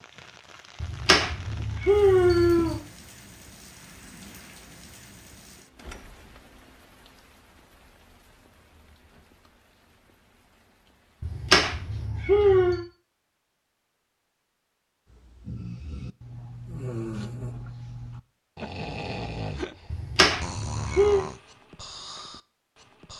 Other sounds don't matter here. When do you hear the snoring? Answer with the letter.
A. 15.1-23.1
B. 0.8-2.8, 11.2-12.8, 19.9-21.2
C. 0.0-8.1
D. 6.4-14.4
A.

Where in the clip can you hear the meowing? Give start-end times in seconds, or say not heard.
0.8-2.8, 11.2-12.8, 19.9-21.2.